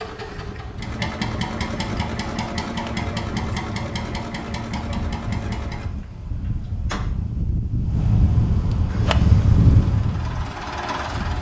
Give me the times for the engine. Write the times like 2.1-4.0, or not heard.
0.0-7.0, 8.8-11.3.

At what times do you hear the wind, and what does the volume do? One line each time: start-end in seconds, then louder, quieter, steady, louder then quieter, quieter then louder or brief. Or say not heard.
0.1-11.3 louder.